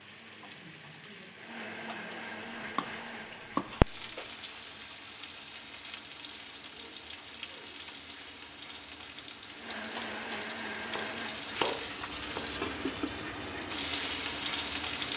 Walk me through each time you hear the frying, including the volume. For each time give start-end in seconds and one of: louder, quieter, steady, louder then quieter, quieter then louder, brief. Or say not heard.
0.0-15.1 louder.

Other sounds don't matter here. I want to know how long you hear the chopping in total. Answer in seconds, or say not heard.
3 s.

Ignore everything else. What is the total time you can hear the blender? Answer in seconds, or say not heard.
15 s.